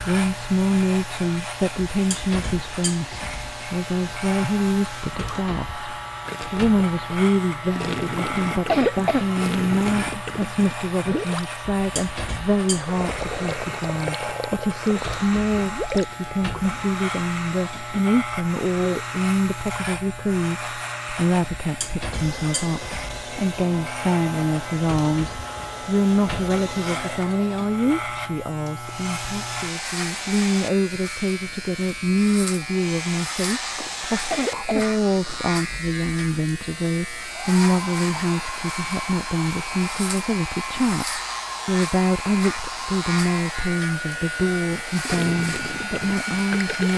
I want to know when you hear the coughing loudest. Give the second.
9 s.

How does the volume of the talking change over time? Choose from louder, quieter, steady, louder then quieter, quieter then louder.
steady.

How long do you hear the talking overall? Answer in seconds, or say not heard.
47 s.